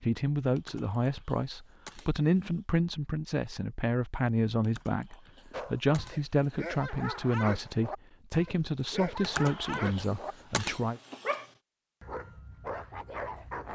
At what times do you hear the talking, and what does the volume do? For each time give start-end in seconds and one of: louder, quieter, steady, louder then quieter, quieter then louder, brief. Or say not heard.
0.0-11.0 steady.